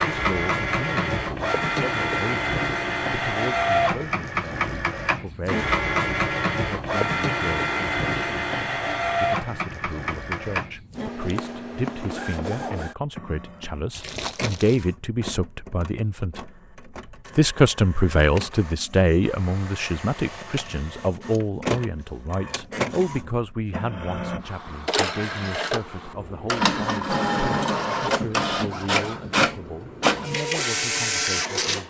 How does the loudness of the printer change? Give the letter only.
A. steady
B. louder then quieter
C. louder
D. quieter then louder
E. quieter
D.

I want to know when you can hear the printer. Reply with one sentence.
You can hear the printer from 0.0 to 31.8 s.